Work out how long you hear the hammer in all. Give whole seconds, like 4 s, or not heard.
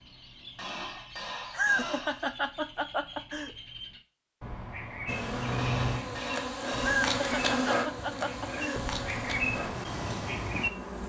3 s.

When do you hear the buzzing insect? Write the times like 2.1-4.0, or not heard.
5.0-11.0.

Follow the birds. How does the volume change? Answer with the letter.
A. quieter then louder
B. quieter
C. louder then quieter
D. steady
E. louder
E.